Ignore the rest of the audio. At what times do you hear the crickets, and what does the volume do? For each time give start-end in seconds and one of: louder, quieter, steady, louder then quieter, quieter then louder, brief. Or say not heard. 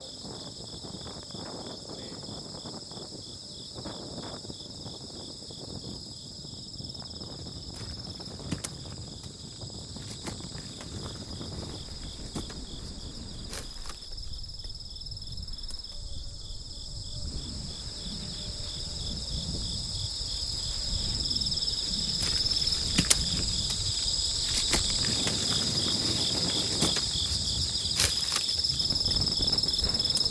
0.0-30.2 louder.